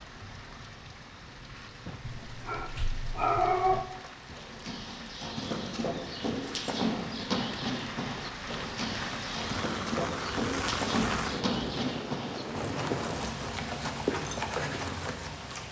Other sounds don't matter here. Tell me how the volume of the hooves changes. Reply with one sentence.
The volume of the hooves stays about the same.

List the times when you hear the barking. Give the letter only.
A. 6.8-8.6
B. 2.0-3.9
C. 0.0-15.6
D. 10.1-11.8
B.